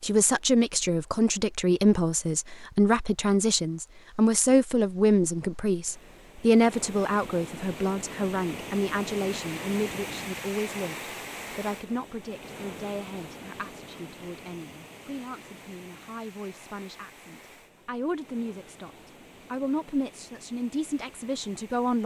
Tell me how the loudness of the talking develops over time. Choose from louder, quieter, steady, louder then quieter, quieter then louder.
quieter then louder.